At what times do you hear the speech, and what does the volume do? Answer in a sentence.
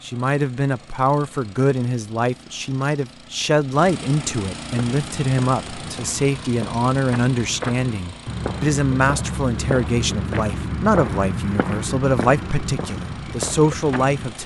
You can hear the speech from 0.0 to 14.4 s, at a steady volume.